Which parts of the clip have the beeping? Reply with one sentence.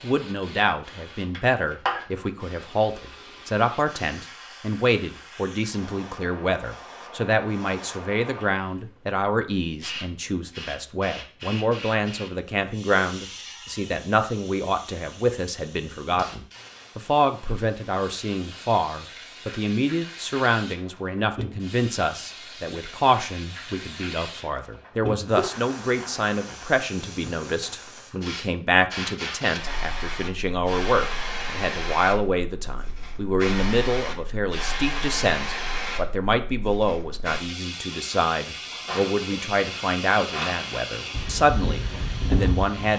You can't hear the beeping here.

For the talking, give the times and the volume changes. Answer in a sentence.
The talking can be heard from 0.0 to 42.9 s, at a steady volume.